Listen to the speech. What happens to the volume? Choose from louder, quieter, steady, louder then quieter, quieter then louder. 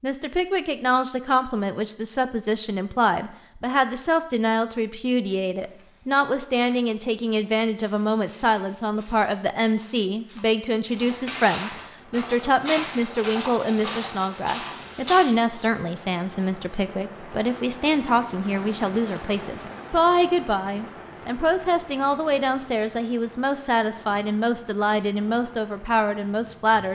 steady.